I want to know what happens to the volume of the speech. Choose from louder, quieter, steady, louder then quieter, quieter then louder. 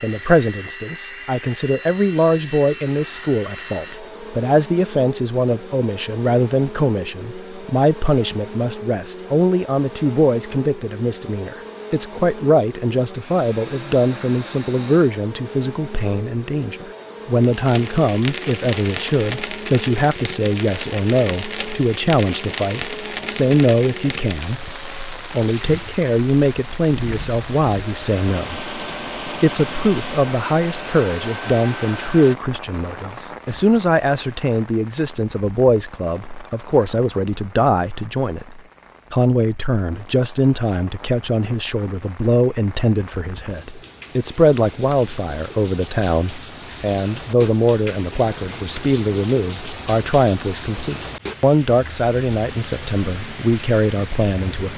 steady.